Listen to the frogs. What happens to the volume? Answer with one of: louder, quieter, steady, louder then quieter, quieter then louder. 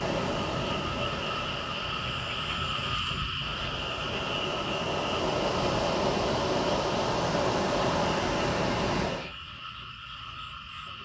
quieter.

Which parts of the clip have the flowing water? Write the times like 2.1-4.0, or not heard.
0.0-9.3.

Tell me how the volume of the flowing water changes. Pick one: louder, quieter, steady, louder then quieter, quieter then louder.
quieter then louder.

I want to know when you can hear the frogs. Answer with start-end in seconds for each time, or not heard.
0.0-10.9.